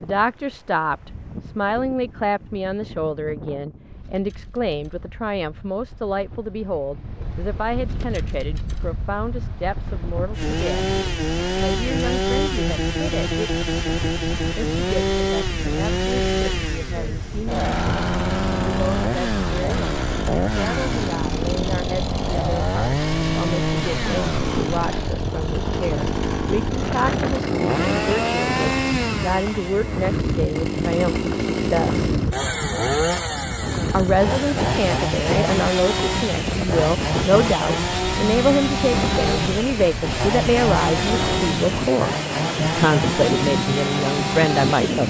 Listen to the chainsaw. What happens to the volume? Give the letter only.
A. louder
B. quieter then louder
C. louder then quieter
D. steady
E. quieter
D.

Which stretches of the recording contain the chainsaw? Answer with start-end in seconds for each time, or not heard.
10.3-45.0.